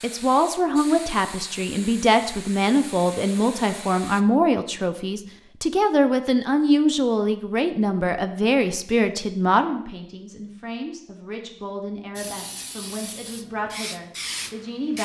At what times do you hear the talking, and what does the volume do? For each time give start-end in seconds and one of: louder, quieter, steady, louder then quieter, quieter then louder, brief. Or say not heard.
0.0-15.0 quieter.